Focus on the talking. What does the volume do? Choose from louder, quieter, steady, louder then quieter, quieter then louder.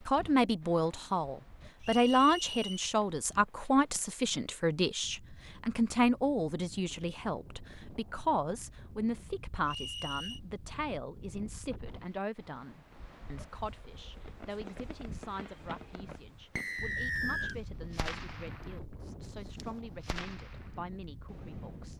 quieter.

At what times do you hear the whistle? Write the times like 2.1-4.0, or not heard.
1.8-2.9, 9.7-10.4, 16.6-17.6.